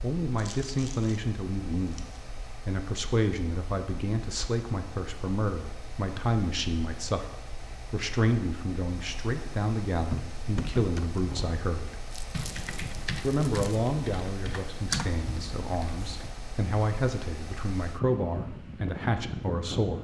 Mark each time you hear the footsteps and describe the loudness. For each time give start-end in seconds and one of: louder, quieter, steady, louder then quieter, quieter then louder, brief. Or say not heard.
not heard.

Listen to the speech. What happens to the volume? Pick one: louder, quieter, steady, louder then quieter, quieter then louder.
steady.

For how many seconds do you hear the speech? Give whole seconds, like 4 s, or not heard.
18 s.